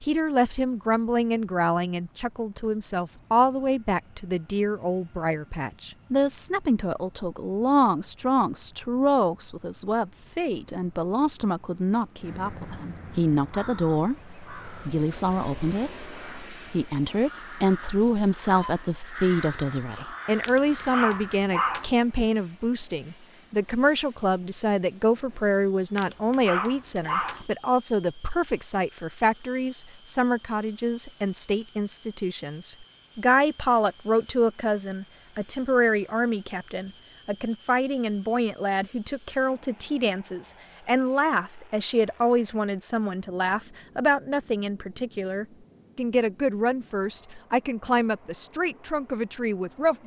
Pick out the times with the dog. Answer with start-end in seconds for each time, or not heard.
20.4-21.9, 25.9-27.4.